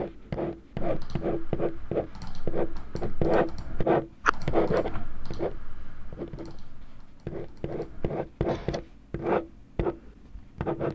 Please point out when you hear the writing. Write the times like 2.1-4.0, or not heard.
0.0-10.9.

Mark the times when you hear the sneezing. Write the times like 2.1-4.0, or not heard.
not heard.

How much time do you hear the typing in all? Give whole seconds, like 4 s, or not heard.
8 s.